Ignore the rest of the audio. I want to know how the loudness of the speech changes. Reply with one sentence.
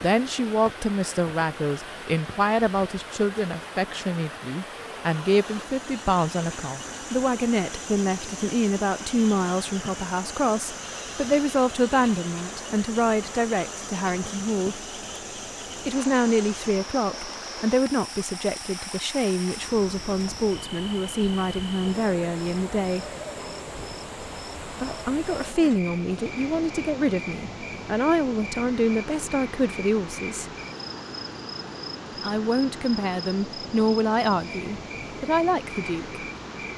The loudness of the speech stays about the same.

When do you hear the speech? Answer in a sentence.
You can hear the speech from 0.0 to 14.8 s, from 15.8 to 23.1 s, from 24.7 to 30.5 s and from 32.2 to 36.2 s.